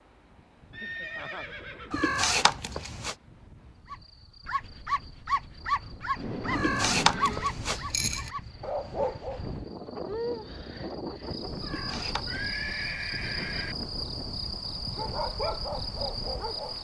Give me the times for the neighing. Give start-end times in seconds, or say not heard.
0.7-2.1, 6.2-7.5, 11.8-13.8.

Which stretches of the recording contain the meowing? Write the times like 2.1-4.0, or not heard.
1.9-3.1, 6.5-8.3, 11.6-12.4.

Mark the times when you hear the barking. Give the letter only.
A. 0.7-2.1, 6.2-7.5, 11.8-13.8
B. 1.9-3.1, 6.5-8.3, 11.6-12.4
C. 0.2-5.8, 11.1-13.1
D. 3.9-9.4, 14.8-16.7
D.